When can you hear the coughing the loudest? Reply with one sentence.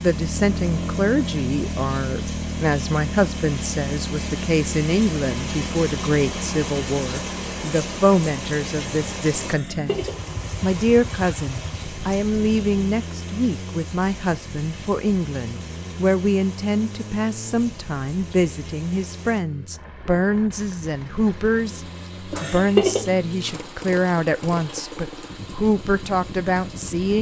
The volume of the coughing peaks at 23 seconds.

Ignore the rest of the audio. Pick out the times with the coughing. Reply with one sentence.
You can hear the coughing from 9.4 to 10.2 s and from 22.3 to 23.1 s.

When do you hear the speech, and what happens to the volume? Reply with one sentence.
You can hear the speech from 0.0 to 27.1 s, at a steady volume.